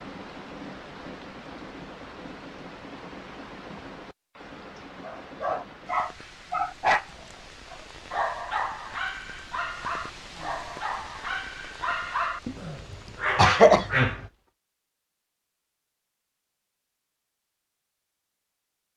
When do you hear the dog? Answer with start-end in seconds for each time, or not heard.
5.0-14.2.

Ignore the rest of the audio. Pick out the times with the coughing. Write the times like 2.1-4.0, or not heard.
12.4-14.2.